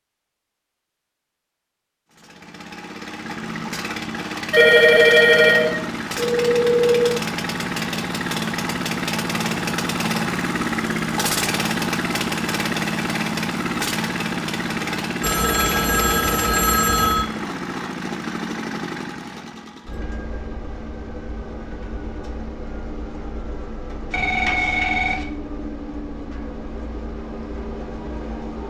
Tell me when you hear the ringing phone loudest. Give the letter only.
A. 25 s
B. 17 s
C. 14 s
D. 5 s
D.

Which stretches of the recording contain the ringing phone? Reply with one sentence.
You can hear the ringing phone from 4.5 to 7.2 s, from 15.2 to 17.2 s and from 24.1 to 25.2 s.